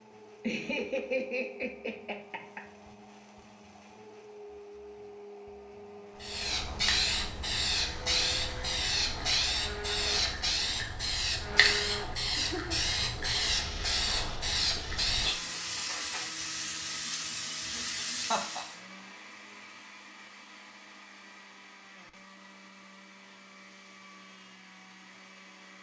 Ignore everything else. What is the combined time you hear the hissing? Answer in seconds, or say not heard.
13 s.